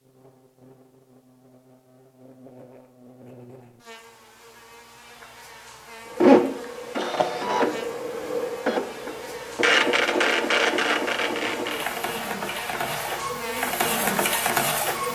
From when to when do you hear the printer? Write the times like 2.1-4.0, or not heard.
6.1-15.1.